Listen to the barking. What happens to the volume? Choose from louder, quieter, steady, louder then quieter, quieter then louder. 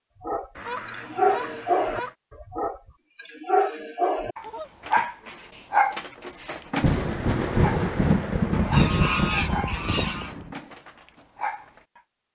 quieter.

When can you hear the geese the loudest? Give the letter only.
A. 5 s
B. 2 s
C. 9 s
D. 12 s
C.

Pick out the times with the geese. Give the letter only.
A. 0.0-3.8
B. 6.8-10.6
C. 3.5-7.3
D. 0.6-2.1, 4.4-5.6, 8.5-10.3
D.